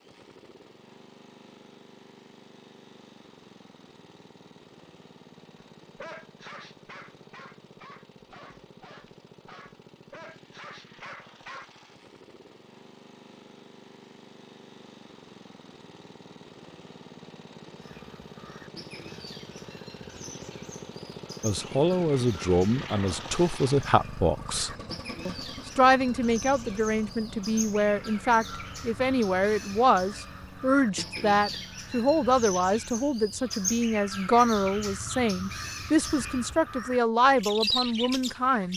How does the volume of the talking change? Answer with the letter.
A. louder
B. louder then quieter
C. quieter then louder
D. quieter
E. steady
E.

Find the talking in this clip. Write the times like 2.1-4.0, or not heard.
21.4-38.7.